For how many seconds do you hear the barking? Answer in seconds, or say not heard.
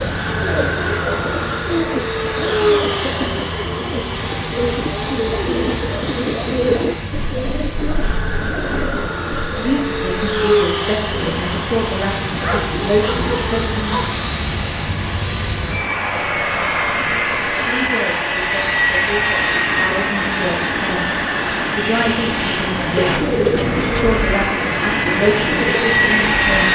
2 s.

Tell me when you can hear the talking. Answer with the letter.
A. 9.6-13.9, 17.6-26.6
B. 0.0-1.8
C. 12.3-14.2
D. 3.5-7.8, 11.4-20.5
A.